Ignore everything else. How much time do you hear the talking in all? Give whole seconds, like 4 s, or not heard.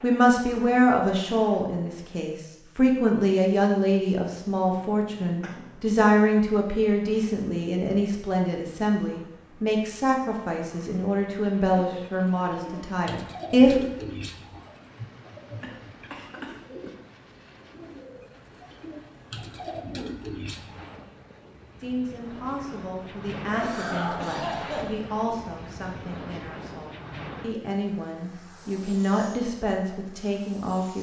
23 s.